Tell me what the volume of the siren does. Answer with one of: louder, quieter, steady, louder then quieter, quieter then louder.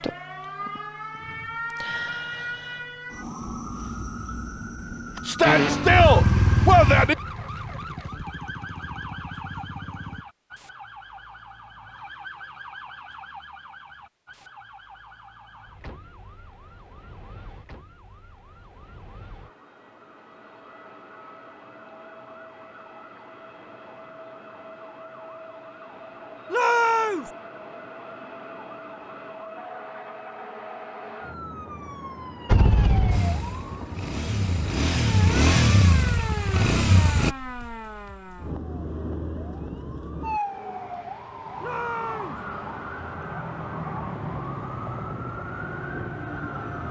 quieter then louder.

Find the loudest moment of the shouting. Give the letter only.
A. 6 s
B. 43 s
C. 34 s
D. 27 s
A.